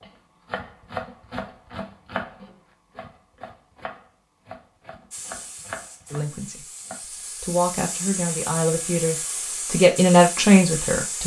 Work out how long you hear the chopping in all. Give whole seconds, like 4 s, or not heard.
7 s.